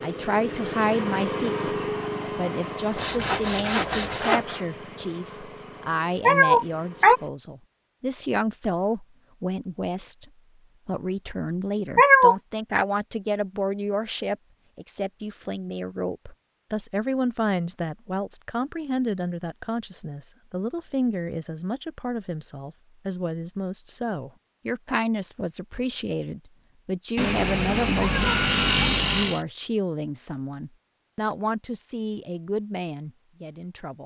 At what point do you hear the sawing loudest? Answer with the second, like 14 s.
29 s.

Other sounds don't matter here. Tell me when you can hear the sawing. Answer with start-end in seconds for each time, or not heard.
3.0-4.7, 27.1-29.4.